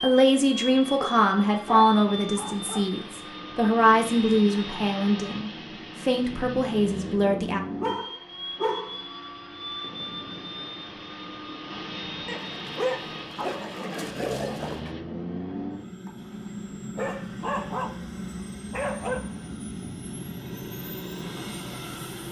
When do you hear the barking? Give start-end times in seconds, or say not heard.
1.0-2.9, 7.8-9.0, 12.2-14.9, 16.9-19.4.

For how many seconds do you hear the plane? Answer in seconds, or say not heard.
22 s.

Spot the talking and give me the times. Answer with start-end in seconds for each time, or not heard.
0.0-7.6.